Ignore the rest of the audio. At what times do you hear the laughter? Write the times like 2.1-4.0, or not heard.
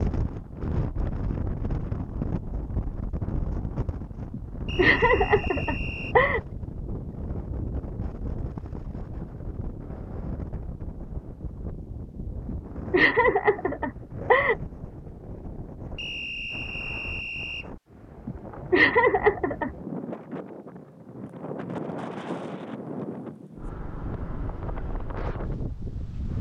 4.3-6.4, 12.4-14.6, 18.2-19.7.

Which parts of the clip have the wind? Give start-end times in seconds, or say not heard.
0.0-26.3.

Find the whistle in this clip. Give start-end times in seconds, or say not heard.
4.7-6.2, 15.9-17.6.